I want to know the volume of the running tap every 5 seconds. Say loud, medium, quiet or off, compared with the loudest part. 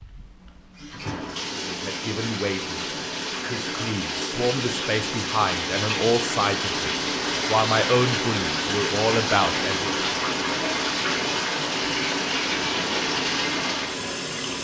medium, loud, loud.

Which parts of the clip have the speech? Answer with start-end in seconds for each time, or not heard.
1.6-10.1.